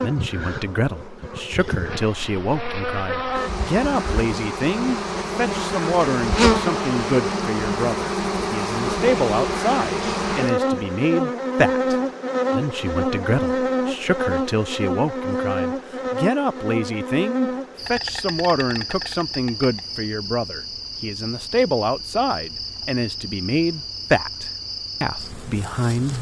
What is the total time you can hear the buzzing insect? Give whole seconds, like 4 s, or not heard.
26 s.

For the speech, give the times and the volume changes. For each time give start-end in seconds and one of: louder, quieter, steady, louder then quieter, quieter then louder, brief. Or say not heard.
0.0-26.1 steady.